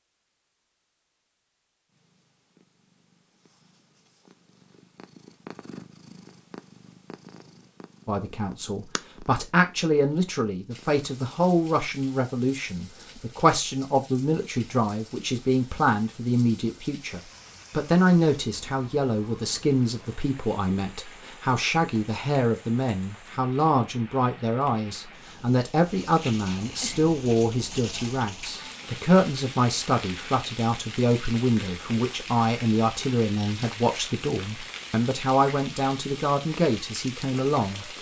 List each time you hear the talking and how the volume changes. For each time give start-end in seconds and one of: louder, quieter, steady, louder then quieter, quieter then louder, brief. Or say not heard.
8.1-37.9 steady.